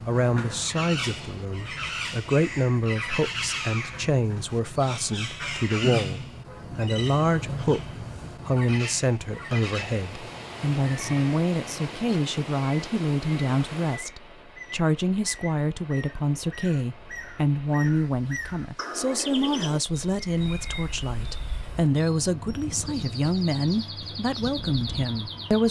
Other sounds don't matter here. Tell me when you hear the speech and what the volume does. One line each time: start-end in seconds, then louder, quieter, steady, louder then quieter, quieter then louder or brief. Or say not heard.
0.1-25.6 steady.